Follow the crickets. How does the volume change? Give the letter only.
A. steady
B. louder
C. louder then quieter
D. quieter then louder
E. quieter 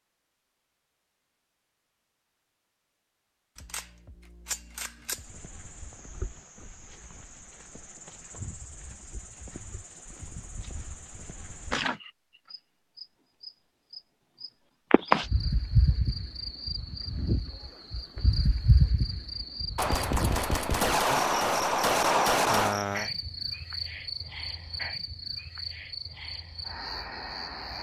C.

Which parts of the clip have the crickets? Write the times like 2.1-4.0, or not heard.
5.0-27.7.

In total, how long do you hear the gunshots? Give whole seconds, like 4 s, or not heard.
5 s.